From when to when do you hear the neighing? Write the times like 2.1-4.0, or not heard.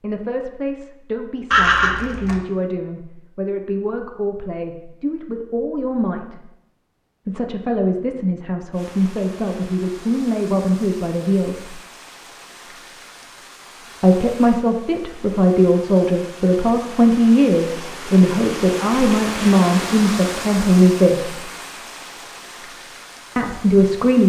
1.5-2.4.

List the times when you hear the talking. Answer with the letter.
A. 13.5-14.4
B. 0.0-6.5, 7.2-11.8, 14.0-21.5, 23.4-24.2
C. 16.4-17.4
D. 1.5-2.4
B.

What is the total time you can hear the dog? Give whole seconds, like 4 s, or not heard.
not heard.